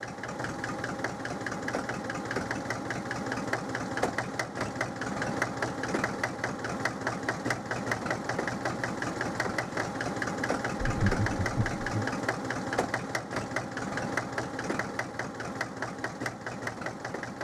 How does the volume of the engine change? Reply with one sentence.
The loudness of the engine stays about the same.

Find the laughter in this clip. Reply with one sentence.
You can hear the laughter from 10.8 to 12.2 s.